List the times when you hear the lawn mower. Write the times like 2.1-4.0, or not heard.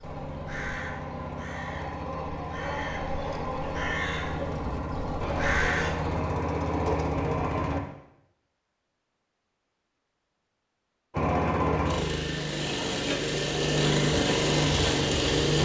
0.0-7.8, 11.1-15.6.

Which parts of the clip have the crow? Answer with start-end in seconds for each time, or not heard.
0.0-6.2.